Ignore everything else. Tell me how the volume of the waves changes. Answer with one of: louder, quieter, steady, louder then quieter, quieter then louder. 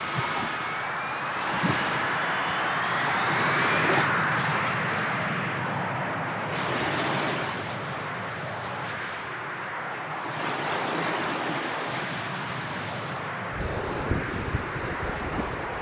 steady.